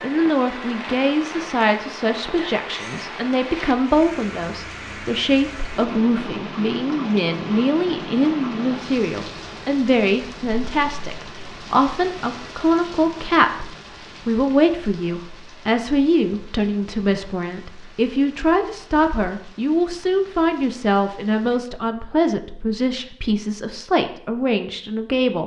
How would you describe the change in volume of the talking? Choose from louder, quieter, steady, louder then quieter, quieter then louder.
steady.